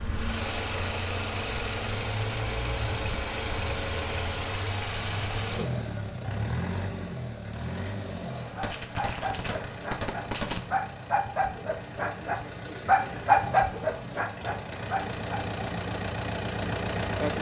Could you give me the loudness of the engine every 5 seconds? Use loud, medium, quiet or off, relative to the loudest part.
loud, loud, medium, loud.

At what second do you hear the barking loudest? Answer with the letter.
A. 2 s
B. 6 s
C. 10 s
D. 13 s
D.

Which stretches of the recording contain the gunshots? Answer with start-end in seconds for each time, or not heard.
8.6-10.6.